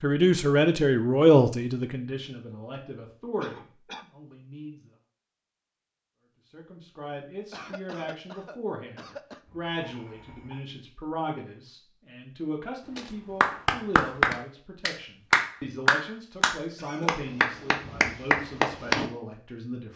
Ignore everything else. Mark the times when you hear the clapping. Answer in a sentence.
The clapping can be heard from 12.9 to 19.1 s.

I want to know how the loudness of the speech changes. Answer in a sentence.
The loudness of the speech goes down.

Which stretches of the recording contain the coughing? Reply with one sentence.
The coughing can be heard from 3.4 to 4.0 s, from 7.5 to 9.4 s and from 16.8 to 17.2 s.